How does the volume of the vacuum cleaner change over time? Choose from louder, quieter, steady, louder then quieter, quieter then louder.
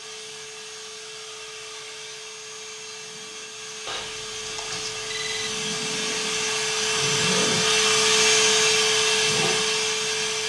louder.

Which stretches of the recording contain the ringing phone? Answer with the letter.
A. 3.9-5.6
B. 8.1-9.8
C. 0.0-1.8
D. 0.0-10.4
A.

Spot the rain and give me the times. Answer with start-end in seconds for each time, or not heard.
not heard.